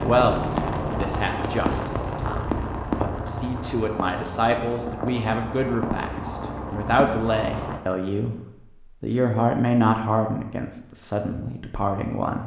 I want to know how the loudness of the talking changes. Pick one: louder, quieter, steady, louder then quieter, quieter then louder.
louder.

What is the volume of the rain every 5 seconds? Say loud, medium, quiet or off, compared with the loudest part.
loud, loud, off.